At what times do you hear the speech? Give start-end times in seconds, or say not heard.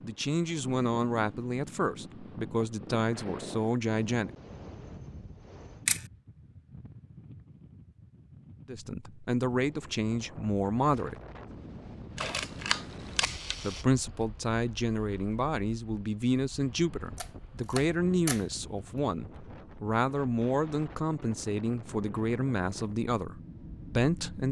0.0-4.3, 8.7-11.2, 13.6-24.4.